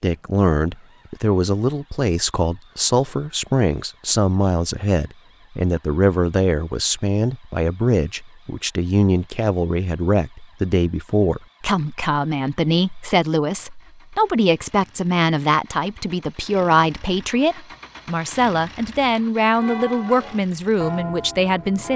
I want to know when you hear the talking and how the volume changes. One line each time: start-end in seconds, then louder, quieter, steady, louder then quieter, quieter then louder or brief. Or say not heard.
0.0-21.9 steady.